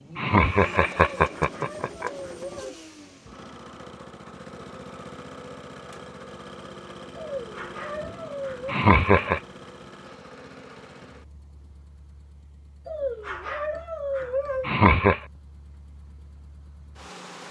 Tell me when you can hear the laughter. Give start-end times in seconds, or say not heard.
0.1-2.1, 8.7-9.4, 14.6-15.2.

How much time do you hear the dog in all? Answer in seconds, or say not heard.
5 s.